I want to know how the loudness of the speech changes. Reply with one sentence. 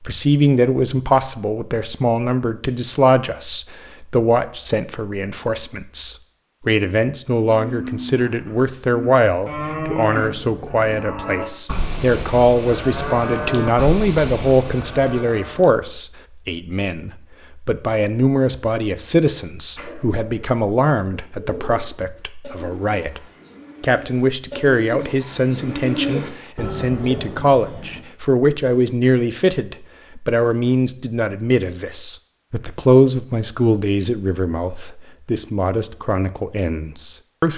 The volume of the speech stays about the same.